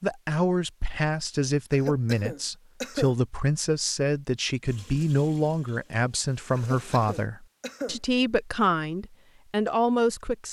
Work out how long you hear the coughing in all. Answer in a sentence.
You can hear the coughing for 3 seconds altogether.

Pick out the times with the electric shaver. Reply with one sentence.
The electric shaver can't be heard in this clip.